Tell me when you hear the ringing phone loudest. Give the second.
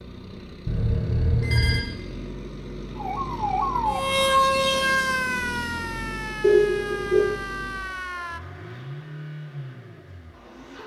7 s.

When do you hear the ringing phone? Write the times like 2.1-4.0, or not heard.
0.7-1.8, 6.4-7.2.